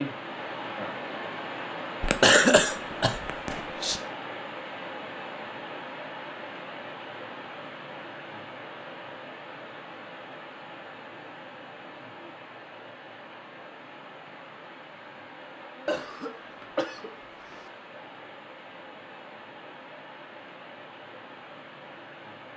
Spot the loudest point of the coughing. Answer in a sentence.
The volume of the coughing peaks at 2 seconds.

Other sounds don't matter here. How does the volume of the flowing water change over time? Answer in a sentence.
The loudness of the flowing water goes down.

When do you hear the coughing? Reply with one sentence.
You can hear the coughing from 2.0 to 4.0 s and from 15.8 to 17.7 s.